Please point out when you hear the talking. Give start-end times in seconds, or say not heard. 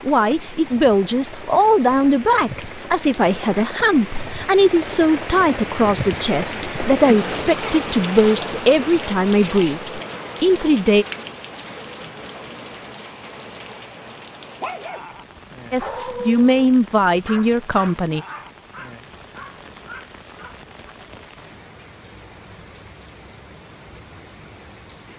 0.0-11.1, 15.7-18.2.